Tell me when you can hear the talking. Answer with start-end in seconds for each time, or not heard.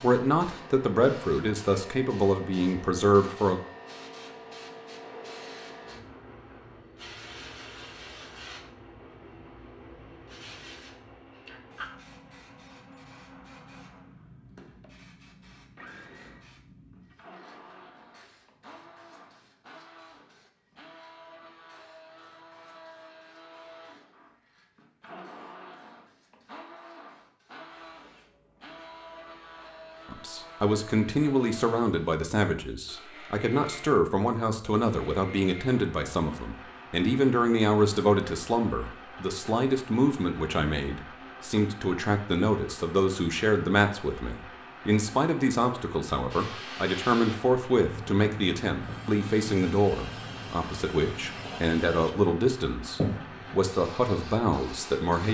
0.0-3.6, 30.1-55.2.